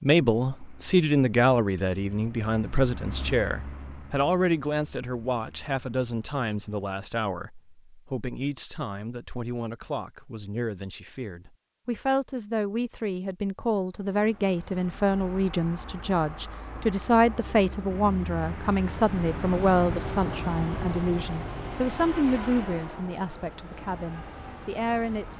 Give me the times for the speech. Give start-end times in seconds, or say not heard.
0.0-25.3.